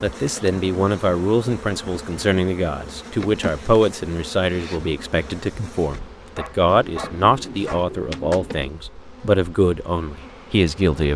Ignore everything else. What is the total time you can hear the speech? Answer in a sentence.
You can hear the speech for 11 seconds altogether.